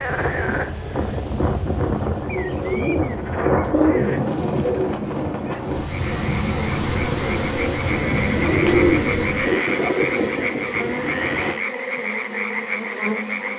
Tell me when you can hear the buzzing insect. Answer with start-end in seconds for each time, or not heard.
5.6-13.5.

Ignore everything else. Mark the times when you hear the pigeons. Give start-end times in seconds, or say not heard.
2.3-5.2, 7.1-9.3.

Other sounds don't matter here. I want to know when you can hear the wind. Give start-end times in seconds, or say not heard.
0.0-11.6.